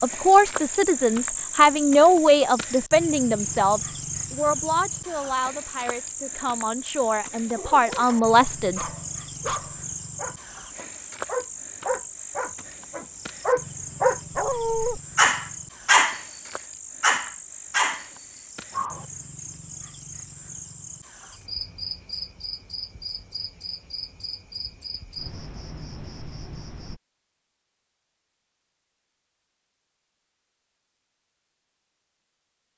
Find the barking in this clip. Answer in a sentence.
The barking can be heard from 7.5 to 19.1 s.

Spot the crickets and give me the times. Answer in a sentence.
The crickets can be heard from 0.0 to 27.0 s.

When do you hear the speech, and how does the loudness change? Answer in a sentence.
You can hear the speech from 0.0 to 8.8 s, getting quieter then louder.